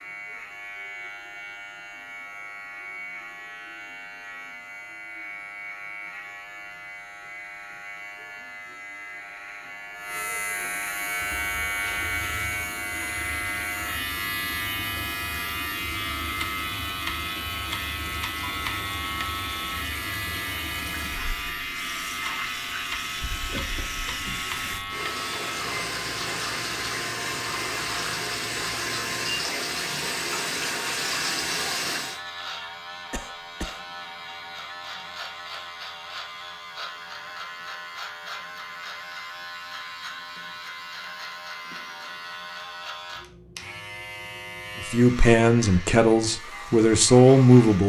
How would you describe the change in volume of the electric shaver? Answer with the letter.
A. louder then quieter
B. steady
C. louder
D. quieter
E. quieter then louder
A.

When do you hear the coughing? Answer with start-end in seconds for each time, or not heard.
33.1-33.8.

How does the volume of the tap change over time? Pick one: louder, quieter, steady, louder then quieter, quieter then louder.
louder.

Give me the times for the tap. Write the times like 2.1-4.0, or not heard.
11.1-32.2.